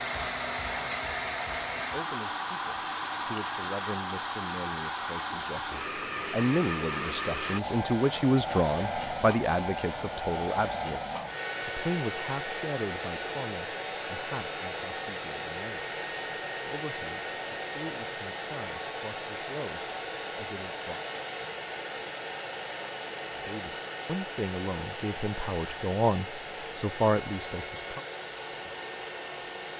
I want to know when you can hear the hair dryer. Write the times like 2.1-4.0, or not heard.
0.0-29.7.